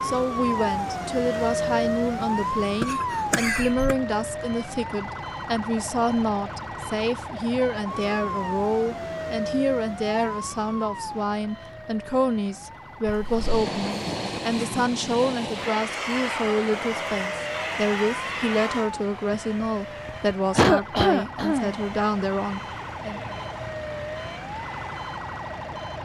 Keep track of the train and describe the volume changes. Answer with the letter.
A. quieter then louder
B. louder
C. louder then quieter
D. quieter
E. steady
D.